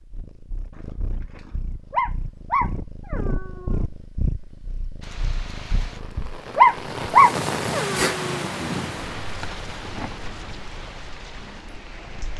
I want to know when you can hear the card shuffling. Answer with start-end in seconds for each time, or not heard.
not heard.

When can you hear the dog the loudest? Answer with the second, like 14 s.
7 s.